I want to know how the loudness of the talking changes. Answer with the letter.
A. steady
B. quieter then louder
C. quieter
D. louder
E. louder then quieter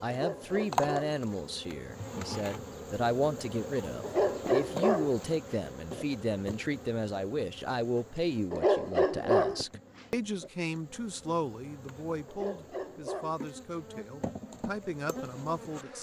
C.